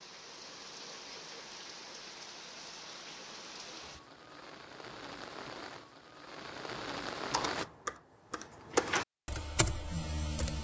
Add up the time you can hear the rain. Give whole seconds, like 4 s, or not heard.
8 s.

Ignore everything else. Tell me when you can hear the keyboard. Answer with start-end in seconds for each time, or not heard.
7.3-10.5.